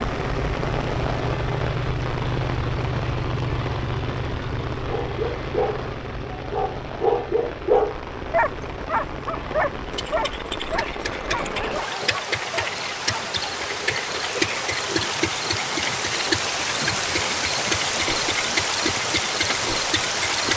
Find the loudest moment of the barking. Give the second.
8 s.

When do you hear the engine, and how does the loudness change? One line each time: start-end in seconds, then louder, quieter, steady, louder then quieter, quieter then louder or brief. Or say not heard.
0.0-20.5 quieter then louder.